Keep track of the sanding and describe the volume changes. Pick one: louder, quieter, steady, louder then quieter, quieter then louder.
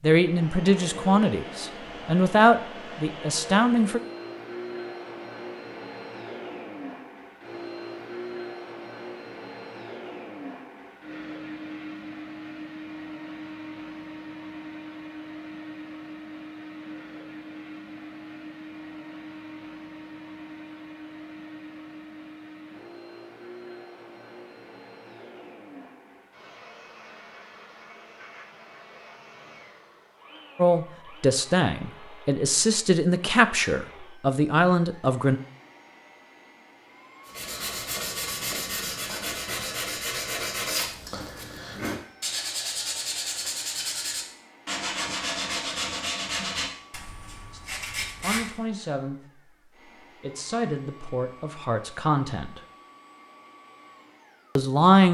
steady.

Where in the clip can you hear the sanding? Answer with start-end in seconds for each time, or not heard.
37.2-48.5.